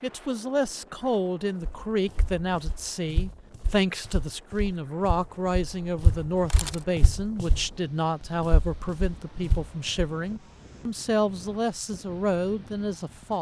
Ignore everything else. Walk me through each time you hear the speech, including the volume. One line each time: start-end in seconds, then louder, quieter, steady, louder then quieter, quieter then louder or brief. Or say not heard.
0.0-13.3 steady.